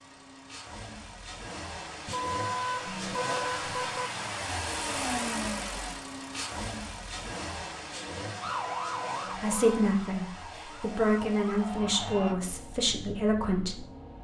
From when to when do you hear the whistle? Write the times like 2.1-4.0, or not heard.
not heard.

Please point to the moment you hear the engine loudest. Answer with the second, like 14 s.
5 s.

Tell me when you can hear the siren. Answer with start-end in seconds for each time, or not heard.
8.4-12.3.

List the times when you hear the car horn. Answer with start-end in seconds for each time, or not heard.
2.0-4.1, 8.4-9.9.